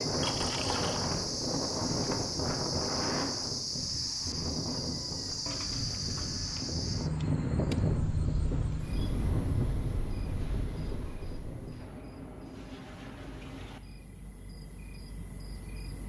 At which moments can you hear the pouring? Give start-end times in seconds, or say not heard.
0.2-1.1, 5.5-6.7, 11.8-13.8.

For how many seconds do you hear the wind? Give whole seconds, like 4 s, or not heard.
12 s.